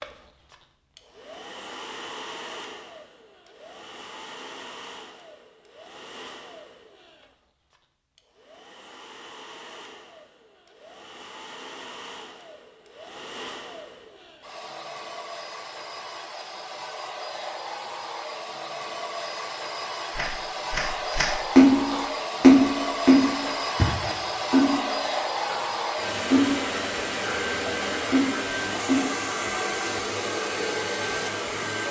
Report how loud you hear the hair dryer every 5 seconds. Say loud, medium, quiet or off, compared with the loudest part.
quiet, quiet, quiet, medium, loud, loud, loud.